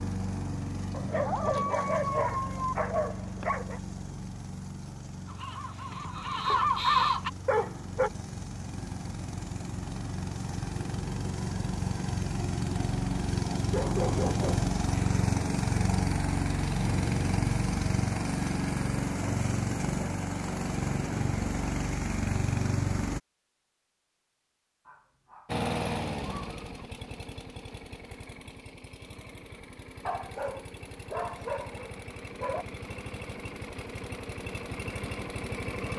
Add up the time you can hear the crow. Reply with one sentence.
The crow can be heard for 2 seconds in total.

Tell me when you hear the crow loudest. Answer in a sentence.
The volume of the crow peaks at 7 seconds.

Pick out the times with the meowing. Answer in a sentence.
The meowing can be heard from 1.2 to 2.8 s.